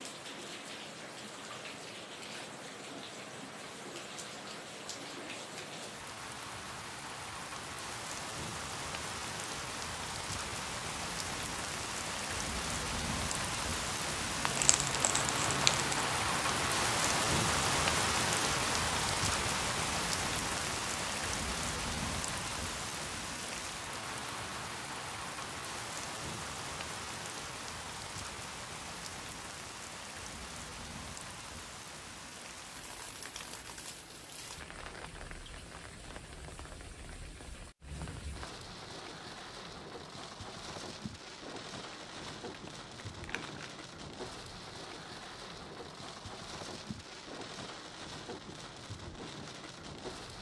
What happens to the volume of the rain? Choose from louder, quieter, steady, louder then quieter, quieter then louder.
louder then quieter.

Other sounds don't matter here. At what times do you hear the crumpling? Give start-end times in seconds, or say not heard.
14.4-16.1, 42.0-43.7.